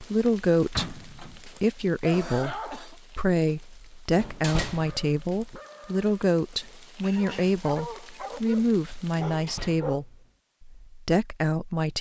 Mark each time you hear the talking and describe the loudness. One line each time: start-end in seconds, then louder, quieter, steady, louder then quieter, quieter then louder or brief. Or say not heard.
0.0-11.9 steady.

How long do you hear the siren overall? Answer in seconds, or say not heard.
not heard.